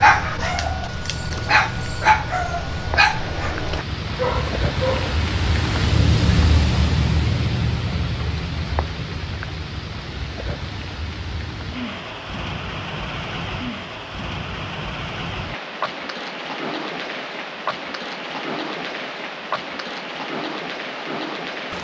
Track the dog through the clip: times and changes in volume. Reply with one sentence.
The dog can be heard from 0.0 to 5.2 s, getting louder then quieter.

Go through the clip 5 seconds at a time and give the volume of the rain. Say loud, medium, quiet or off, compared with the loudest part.
medium, loud, medium, medium, medium.